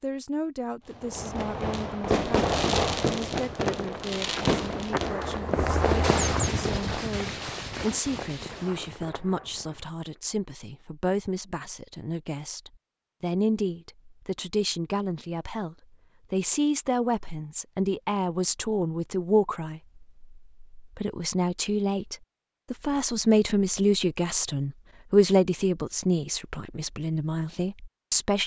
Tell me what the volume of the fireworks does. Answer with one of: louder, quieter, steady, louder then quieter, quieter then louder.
quieter.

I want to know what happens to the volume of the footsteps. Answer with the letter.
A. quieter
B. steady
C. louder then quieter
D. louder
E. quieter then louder
C.